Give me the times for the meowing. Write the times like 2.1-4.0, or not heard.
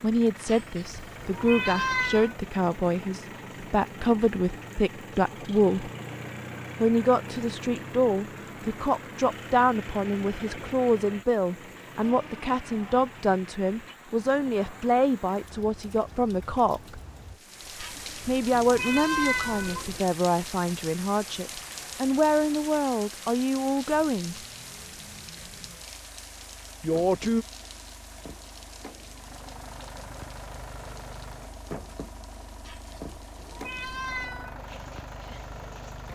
0.5-2.4, 17.8-20.0, 32.6-34.5.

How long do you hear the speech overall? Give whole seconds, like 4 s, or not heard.
23 s.